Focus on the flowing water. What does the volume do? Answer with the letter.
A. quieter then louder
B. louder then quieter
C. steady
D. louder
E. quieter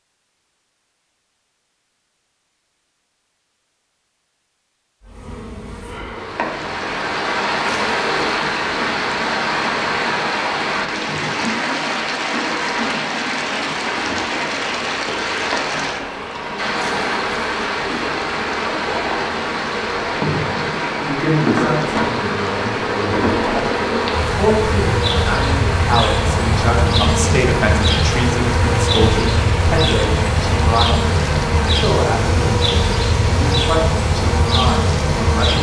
E.